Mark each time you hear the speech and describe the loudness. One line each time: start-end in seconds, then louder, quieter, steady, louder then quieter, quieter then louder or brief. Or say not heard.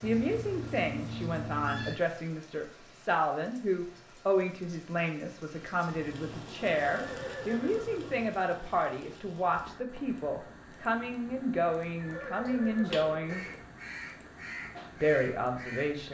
0.0-13.4 steady
14.9-16.0 brief.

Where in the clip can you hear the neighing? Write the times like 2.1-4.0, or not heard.
0.0-2.0, 7.0-8.2, 11.9-13.7.